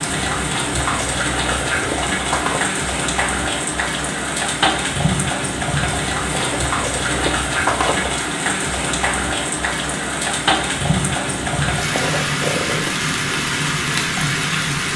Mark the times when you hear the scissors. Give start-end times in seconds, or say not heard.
0.9-2.8, 6.3-8.2, 11.9-12.9.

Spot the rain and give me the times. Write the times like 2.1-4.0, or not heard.
0.0-14.9.